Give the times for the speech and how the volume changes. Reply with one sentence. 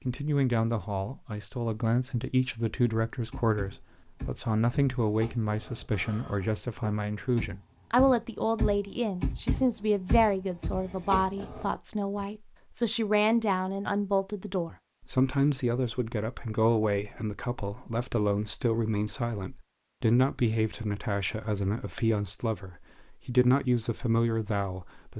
You can hear the speech from 0.1 to 25.1 s, at a steady volume.